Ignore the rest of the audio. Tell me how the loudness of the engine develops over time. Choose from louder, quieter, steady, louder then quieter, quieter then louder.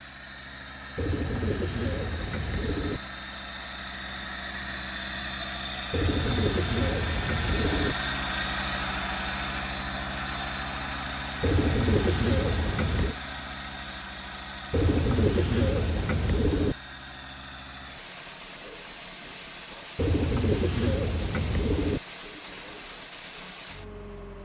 louder then quieter.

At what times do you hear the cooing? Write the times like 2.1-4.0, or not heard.
0.9-3.0, 5.9-8.0, 11.4-13.2, 14.7-16.8, 19.9-22.0.